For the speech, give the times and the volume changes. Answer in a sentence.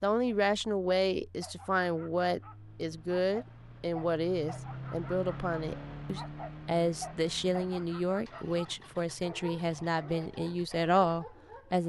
The speech can be heard from 0.0 to 11.8 s, at a steady volume.